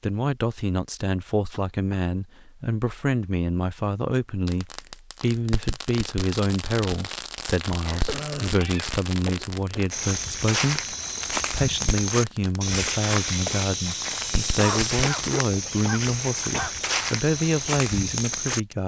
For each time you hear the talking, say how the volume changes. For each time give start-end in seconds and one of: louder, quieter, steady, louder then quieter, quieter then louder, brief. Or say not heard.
0.0-18.8 steady.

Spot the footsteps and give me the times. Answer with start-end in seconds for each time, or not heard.
9.9-18.8.